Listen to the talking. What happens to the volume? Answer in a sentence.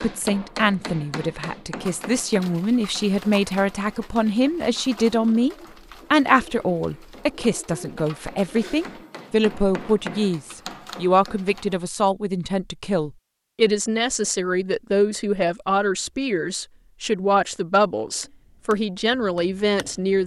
The loudness of the talking stays about the same.